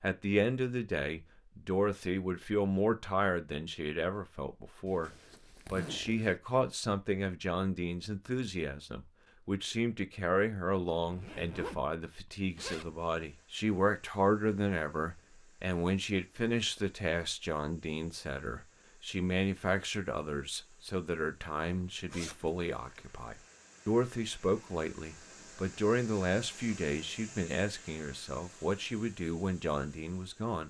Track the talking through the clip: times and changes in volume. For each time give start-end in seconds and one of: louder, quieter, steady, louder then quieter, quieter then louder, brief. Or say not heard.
0.0-30.6 steady.